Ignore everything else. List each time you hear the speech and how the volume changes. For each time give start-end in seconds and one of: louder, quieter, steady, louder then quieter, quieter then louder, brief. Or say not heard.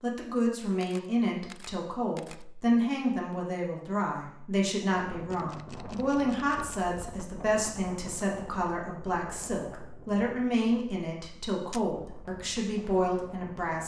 0.0-13.8 steady.